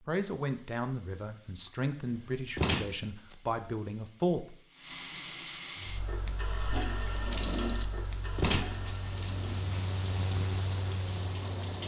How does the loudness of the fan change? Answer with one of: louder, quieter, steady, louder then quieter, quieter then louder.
louder.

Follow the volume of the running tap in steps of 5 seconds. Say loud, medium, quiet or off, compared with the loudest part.
quiet, loud, medium.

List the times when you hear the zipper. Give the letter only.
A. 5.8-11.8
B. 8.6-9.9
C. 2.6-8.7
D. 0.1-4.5
B.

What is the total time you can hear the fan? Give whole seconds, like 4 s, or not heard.
6 s.